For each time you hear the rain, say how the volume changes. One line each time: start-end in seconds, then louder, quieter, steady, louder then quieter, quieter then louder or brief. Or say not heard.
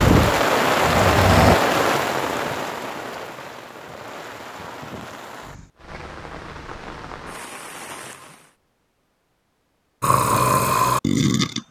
0.0-8.6 quieter.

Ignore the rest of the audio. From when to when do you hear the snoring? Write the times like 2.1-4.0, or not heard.
0.0-1.6, 10.0-11.6.